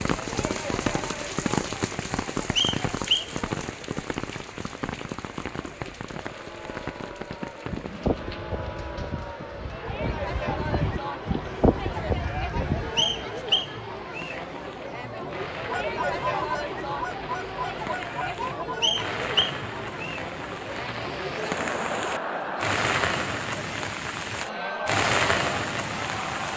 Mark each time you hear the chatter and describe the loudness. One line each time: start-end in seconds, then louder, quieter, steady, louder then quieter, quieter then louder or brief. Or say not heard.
0.0-26.5 louder.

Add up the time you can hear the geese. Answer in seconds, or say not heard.
9 s.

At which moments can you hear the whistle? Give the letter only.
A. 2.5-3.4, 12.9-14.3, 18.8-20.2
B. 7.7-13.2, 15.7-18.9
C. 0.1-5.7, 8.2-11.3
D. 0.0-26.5
A.